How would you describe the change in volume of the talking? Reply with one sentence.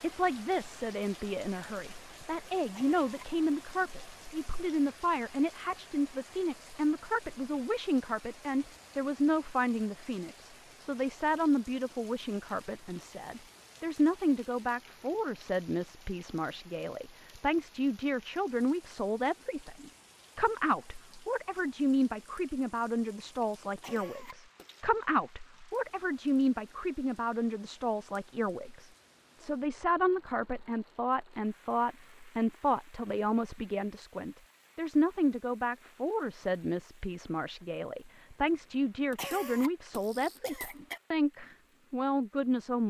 The loudness of the talking stays about the same.